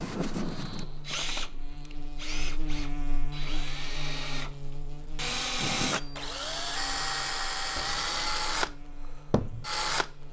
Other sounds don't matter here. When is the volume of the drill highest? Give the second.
8 s.